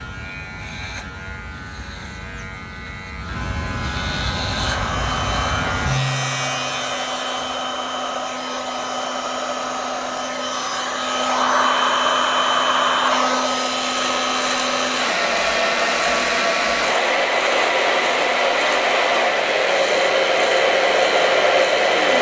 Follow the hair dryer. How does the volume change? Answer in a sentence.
The volume of the hair dryer goes up.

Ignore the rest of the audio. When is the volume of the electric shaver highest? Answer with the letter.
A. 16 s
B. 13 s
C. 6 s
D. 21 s
C.